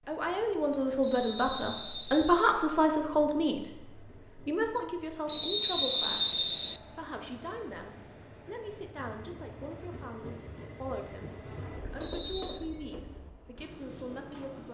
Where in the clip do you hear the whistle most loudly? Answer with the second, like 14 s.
6 s.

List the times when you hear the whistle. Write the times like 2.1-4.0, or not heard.
1.0-2.5, 5.2-6.8, 12.0-12.6.